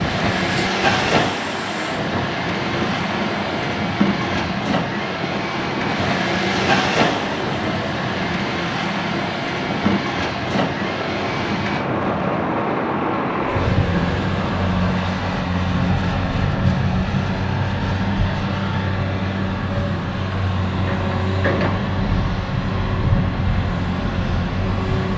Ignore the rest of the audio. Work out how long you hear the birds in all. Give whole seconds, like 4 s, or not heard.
not heard.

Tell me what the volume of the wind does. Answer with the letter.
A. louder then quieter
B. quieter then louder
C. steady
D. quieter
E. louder
C.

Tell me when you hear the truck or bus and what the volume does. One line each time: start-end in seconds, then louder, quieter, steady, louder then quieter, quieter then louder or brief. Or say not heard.
0.0-25.1 steady.